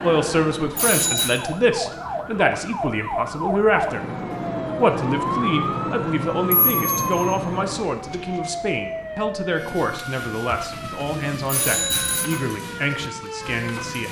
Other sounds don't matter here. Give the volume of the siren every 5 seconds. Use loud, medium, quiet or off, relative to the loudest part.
loud, loud, medium.